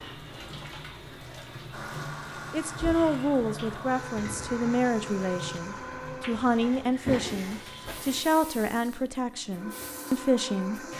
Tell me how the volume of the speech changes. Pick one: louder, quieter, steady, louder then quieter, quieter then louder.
steady.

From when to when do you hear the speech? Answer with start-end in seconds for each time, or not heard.
2.5-10.8.